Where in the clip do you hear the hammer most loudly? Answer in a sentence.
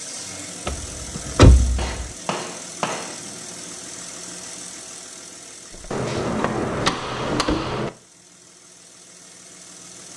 The loudest moment of the hammer is at 7 seconds.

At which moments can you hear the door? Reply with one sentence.
You can hear the door from 0.7 to 2.1 s and from 5.8 to 7.8 s.